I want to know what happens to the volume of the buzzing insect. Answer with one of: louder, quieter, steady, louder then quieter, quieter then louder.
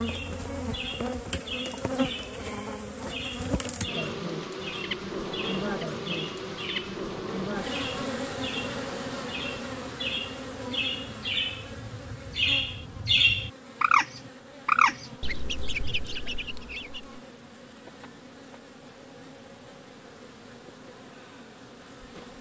quieter.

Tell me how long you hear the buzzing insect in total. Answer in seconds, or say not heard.
22 s.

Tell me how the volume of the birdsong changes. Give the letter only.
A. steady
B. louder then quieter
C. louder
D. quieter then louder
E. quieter
C.